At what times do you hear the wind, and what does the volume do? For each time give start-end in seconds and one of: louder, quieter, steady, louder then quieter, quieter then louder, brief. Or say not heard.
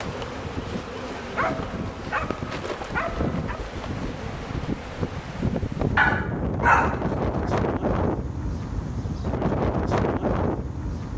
0.0-11.1 louder.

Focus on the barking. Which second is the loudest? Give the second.
7 s.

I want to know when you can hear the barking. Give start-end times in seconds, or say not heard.
1.4-3.6, 6.0-7.5.